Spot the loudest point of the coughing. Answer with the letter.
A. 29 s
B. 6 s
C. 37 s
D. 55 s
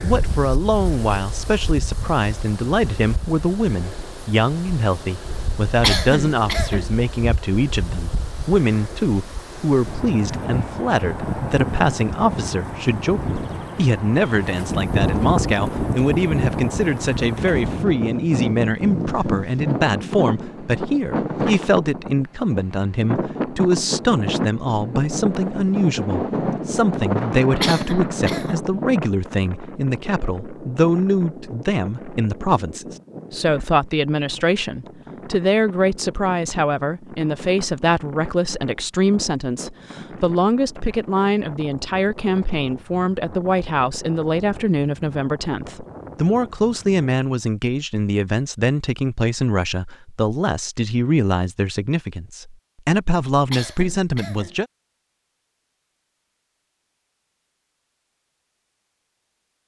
B.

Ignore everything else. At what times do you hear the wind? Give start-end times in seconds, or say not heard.
0.0-47.1.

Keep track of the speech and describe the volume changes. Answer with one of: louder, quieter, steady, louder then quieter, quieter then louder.
steady.